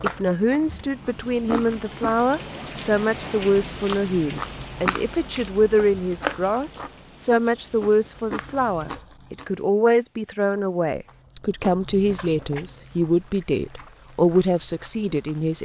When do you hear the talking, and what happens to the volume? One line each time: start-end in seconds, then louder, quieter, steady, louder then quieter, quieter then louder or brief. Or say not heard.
0.0-15.5 steady.